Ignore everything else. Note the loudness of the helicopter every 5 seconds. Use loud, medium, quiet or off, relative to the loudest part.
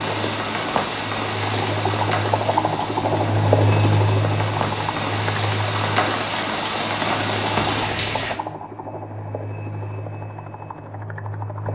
loud, medium, medium.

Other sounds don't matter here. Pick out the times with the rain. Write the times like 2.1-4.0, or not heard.
0.0-8.3.